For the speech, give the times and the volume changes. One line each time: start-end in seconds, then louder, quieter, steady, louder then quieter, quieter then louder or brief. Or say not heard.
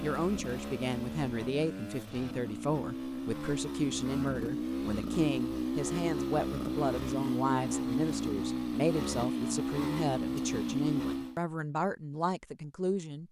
0.0-13.2 steady.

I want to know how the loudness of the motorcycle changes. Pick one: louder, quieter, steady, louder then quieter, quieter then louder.
louder.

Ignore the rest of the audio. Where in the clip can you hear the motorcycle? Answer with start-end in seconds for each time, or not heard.
0.0-11.4.